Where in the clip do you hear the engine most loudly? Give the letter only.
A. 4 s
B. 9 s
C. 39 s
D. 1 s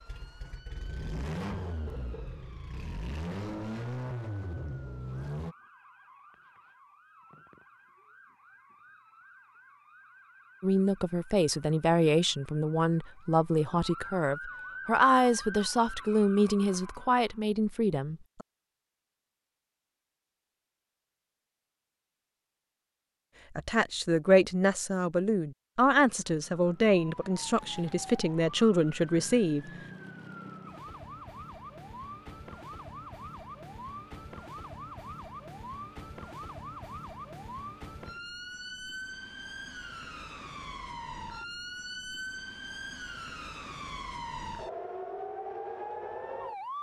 A.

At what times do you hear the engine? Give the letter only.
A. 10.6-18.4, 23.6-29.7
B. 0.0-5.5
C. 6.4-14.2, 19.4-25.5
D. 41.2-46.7
B.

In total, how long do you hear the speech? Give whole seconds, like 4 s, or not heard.
14 s.